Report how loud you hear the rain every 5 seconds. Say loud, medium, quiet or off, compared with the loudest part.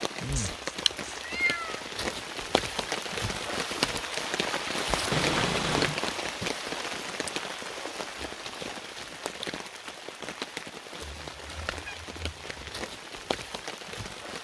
loud, loud, medium.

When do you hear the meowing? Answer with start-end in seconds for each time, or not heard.
0.3-1.9, 5.1-6.0, 11.0-12.7.